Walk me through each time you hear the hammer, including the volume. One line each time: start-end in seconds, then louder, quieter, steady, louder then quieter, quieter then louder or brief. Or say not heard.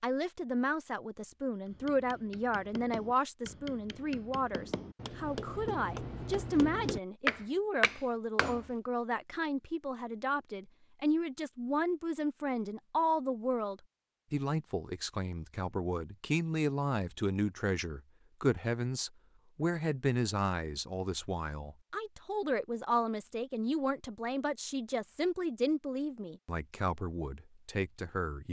1.6-8.7 louder.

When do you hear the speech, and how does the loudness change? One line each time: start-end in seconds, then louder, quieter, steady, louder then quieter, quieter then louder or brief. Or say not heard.
0.0-28.4 steady.